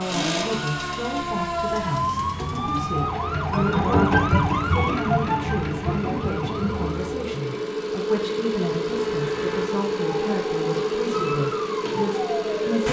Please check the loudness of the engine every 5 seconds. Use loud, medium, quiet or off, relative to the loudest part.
medium, loud, loud.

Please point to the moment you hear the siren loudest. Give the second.
4 s.